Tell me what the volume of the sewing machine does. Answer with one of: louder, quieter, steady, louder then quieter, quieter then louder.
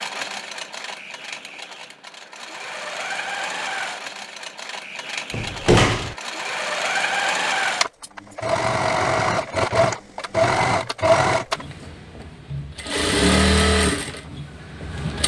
louder.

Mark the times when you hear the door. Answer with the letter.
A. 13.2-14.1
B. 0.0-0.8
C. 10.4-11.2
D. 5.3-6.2
D.